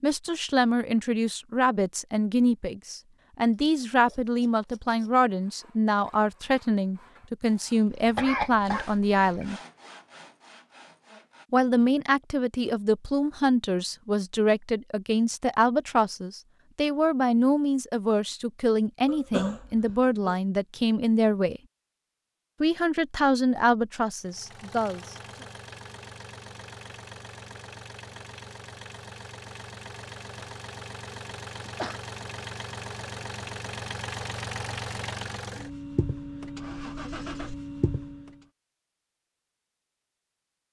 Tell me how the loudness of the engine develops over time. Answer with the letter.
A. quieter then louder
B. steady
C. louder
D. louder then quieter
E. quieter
C.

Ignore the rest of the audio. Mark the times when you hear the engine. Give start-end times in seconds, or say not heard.
24.2-38.5.